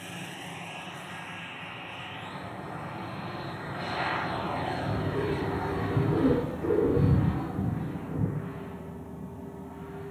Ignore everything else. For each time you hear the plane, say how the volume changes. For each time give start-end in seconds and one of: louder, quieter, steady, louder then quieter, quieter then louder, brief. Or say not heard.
0.0-10.0 louder then quieter.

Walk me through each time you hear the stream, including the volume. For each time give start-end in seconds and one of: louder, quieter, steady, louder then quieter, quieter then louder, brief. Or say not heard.
not heard.